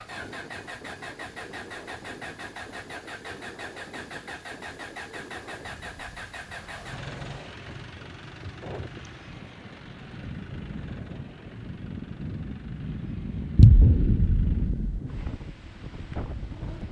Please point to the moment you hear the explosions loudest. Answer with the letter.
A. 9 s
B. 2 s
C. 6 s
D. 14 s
D.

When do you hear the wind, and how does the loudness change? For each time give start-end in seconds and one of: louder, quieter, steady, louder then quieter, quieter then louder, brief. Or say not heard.
0.0-16.8 louder.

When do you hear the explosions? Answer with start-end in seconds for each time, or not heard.
13.6-15.0.